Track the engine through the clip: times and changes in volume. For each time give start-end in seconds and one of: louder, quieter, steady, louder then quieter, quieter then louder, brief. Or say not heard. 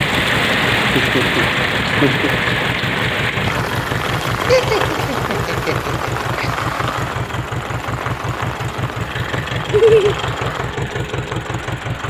0.0-12.0 steady.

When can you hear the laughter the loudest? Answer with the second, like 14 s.
10 s.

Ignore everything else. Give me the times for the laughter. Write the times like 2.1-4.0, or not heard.
0.9-2.3, 4.5-6.5, 9.7-10.2.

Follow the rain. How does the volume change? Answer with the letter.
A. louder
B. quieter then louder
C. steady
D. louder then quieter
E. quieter
E.